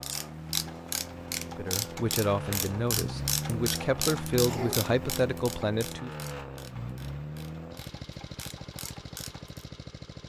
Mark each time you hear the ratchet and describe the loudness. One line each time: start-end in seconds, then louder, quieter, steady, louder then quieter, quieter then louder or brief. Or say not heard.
0.0-9.7 quieter.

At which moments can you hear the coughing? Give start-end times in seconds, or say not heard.
4.5-4.9.